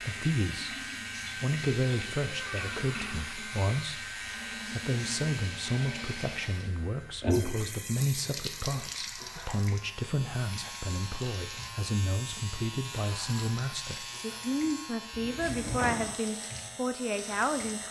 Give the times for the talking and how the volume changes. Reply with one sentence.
The talking can be heard briefly from 0.0 to 0.8 s; and from 1.4 to 17.8 s, at a steady volume.